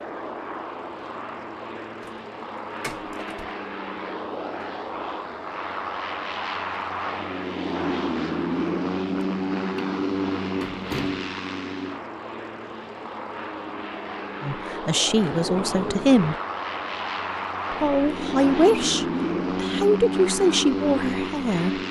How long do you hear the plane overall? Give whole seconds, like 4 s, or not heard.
22 s.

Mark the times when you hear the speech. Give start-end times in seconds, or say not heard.
14.4-16.4, 17.7-21.8.